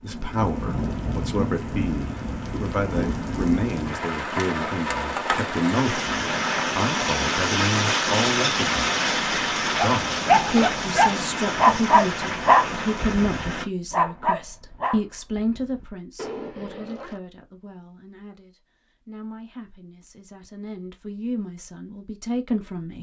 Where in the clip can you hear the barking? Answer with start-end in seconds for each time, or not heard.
10.0-17.2.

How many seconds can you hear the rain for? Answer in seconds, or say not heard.
14 s.